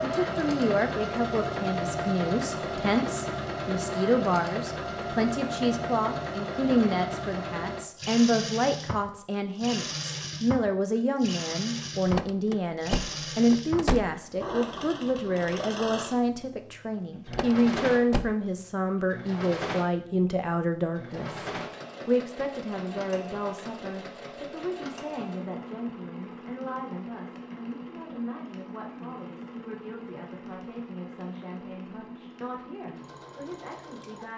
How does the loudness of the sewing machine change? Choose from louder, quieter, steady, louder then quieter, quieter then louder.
quieter.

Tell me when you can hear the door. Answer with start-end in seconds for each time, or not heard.
12.1-14.2, 17.2-18.4.